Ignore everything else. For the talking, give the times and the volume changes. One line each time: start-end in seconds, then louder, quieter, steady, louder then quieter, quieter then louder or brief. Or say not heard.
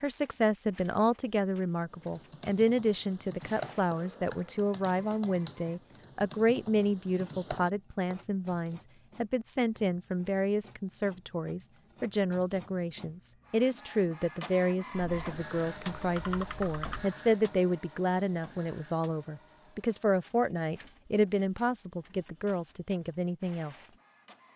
0.0-23.9 steady.